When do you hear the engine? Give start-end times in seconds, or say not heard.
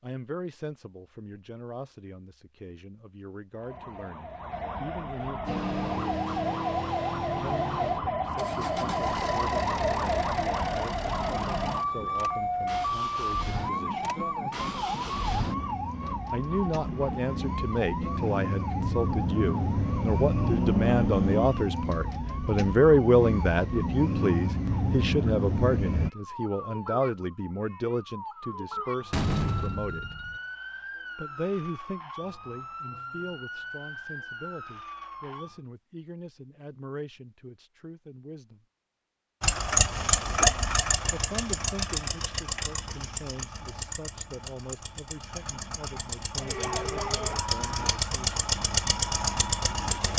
5.5-26.1, 39.4-50.1.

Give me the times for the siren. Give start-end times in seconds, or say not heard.
3.5-35.6, 46.4-50.0.